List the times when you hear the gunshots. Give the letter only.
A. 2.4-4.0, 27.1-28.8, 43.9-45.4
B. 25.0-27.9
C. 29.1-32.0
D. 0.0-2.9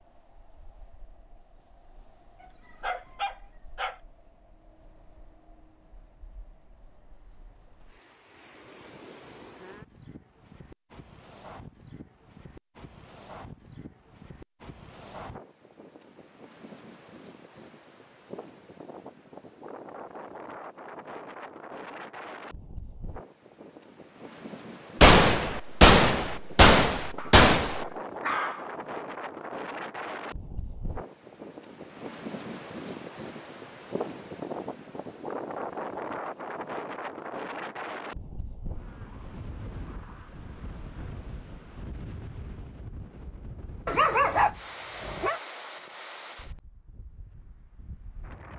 B.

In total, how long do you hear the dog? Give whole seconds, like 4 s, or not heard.
5 s.